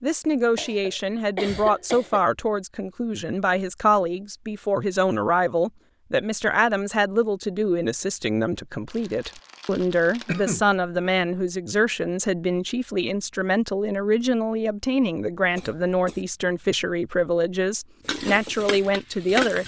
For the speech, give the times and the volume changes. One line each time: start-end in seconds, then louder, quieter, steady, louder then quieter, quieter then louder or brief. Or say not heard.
0.0-19.6 steady.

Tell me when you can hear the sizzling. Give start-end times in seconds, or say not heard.
18.1-19.6.